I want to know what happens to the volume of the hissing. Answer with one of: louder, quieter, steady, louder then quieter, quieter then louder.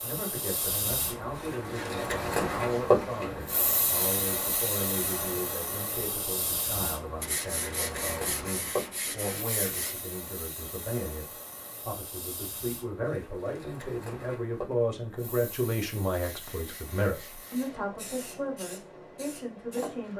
quieter.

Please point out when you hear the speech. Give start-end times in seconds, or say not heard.
0.0-20.1.